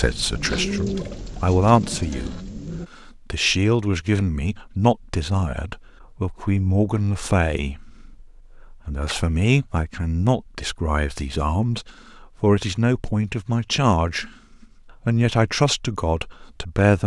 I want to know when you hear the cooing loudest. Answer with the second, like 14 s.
1 s.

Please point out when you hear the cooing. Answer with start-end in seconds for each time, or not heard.
0.0-2.9.